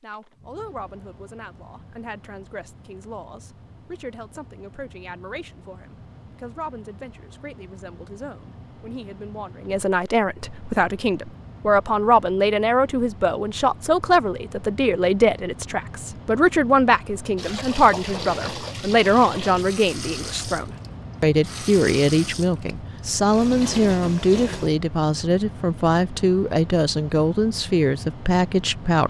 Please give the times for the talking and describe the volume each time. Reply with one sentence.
You can hear the talking from 0.0 to 29.0 s, getting louder.